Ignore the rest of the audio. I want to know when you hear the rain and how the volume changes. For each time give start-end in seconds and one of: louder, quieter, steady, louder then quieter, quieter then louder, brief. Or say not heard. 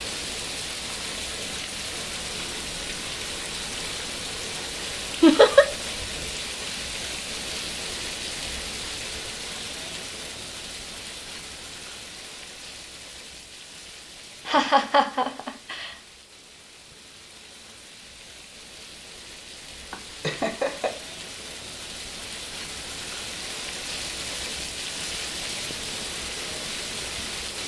0.0-27.6 quieter then louder.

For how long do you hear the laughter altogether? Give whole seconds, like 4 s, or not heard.
3 s.